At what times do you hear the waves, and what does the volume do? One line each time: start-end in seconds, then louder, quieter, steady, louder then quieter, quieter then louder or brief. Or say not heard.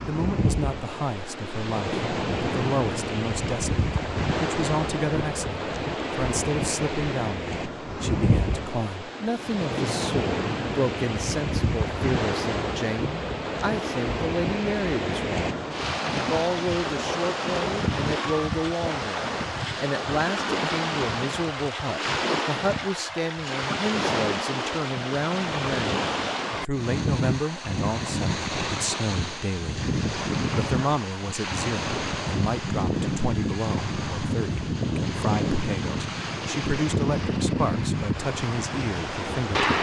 0.0-39.7 steady.